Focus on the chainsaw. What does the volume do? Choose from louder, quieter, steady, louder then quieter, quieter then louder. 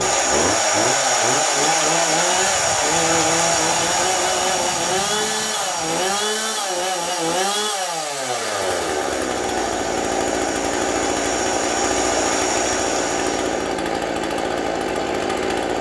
steady.